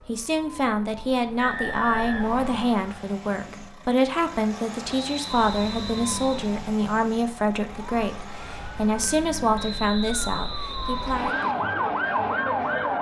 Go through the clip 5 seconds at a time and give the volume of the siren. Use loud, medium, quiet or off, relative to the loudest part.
quiet, quiet, loud.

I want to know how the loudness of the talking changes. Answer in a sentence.
The volume of the talking stays about the same.